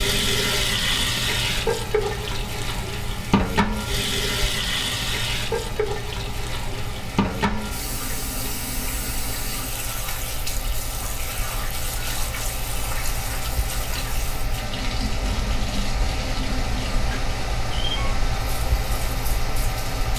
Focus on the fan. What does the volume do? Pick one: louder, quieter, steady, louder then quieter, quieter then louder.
louder.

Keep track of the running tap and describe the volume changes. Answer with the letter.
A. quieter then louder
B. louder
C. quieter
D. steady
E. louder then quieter
C.